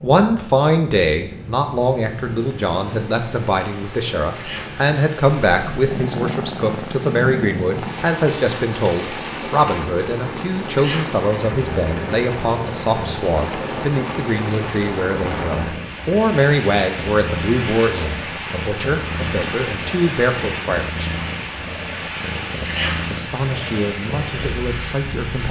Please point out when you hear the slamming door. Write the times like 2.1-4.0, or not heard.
not heard.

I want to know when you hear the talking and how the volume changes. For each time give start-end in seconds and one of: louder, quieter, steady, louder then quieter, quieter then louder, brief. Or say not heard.
0.0-21.1 steady
23.1-25.4 brief.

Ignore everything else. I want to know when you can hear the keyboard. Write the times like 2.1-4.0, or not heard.
not heard.